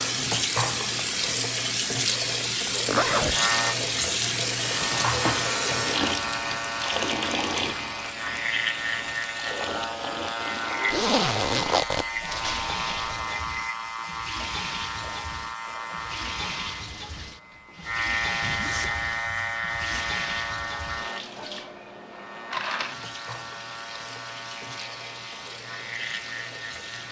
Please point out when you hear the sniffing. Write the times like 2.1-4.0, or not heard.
not heard.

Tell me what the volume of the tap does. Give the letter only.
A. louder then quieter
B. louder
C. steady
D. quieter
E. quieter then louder
D.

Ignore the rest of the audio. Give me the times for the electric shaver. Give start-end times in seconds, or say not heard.
3.3-27.0.